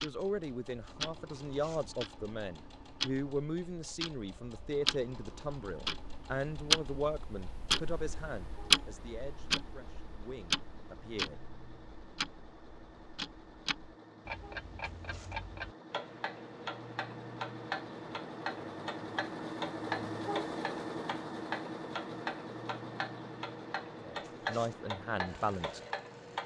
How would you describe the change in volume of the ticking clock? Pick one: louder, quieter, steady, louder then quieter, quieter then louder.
louder then quieter.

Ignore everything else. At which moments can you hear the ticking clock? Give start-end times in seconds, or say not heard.
0.0-26.4.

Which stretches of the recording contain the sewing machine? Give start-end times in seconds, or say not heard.
0.0-26.4.